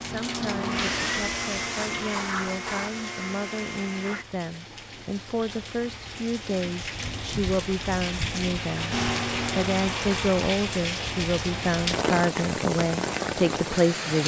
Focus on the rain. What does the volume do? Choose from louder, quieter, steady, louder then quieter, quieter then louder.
louder.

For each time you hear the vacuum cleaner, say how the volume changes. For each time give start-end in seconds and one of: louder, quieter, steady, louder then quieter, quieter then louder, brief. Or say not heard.
0.0-4.2 quieter
8.9-10.3 brief.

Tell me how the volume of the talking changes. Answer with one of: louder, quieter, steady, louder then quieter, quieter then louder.
louder.